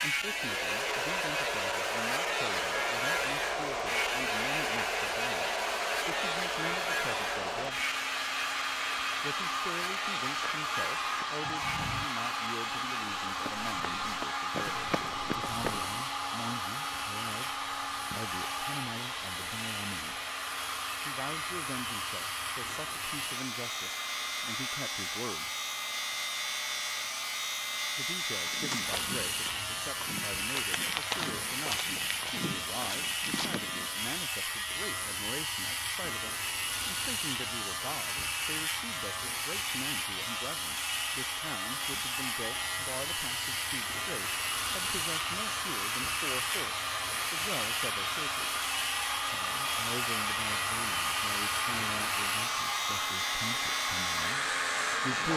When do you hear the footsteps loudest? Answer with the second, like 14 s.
31 s.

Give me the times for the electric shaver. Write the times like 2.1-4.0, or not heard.
0.0-55.3.